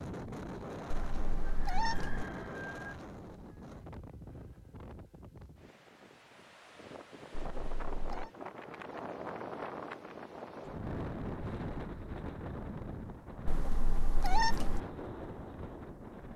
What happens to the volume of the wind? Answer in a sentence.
The volume of the wind goes down, then up.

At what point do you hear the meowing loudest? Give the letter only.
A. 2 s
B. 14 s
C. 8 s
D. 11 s
B.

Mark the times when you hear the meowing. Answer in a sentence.
The meowing can be heard from 0.9 to 2.2 s, from 7.3 to 8.3 s and from 13.4 to 14.8 s.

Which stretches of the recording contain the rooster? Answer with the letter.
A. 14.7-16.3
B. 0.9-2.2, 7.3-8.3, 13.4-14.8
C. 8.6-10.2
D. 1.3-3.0
D.